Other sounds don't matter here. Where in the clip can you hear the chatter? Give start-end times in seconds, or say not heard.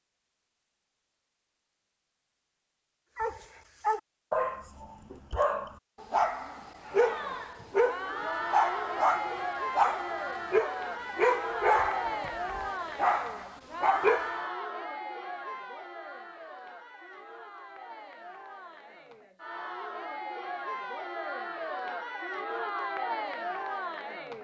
6.8-24.4.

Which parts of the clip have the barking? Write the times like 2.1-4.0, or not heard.
3.1-14.3.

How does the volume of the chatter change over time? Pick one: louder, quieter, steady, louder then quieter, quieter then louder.
quieter then louder.